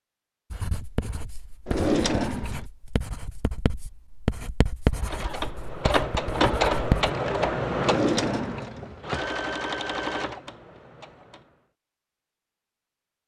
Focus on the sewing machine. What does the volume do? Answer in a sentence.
The volume of the sewing machine goes down.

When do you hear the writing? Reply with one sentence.
The writing can be heard from 0.5 to 7.1 s.